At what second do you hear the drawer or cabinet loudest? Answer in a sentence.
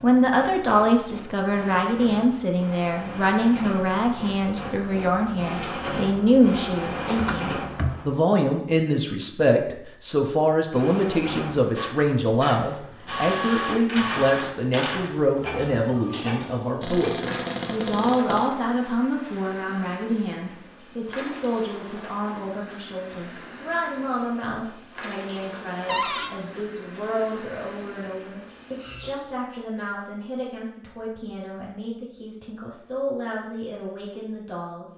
The volume of the drawer or cabinet peaks at 26 seconds.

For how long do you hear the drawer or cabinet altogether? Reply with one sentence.
The drawer or cabinet can be heard for 3 seconds in total.